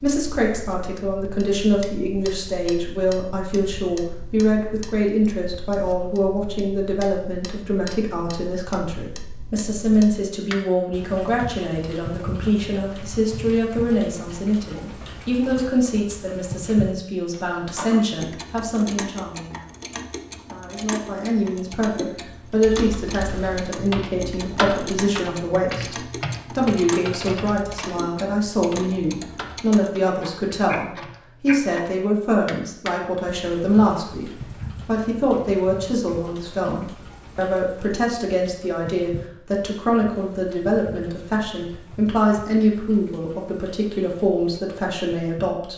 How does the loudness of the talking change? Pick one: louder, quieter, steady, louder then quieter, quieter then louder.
steady.